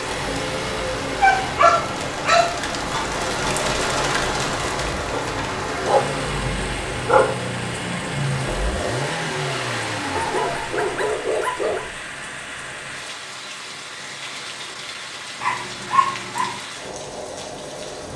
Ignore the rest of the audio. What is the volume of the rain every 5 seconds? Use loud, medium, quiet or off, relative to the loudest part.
loud, medium, medium, medium.